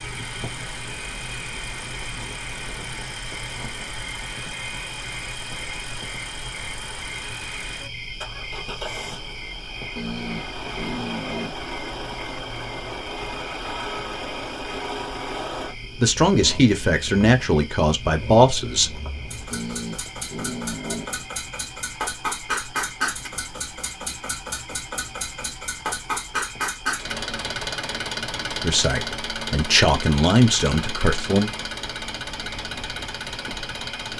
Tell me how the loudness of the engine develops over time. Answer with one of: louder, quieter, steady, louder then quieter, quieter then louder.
louder.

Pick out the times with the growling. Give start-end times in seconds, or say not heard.
9.9-11.6, 19.5-21.1.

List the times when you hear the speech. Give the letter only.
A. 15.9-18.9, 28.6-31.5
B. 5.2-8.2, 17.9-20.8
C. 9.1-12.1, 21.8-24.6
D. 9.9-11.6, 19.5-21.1
A.